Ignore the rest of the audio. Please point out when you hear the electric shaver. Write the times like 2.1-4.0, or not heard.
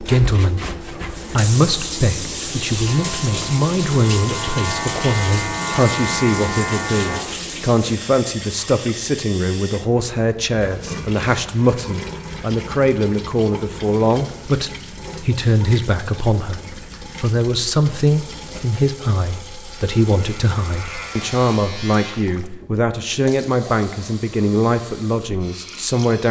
2.9-7.2, 19.9-22.1.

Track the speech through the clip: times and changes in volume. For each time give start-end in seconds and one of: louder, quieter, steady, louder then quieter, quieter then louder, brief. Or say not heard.
0.0-26.2 steady.